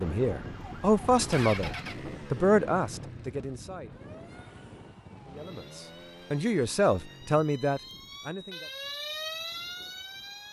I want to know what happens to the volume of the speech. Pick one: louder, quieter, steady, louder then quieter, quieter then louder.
quieter then louder.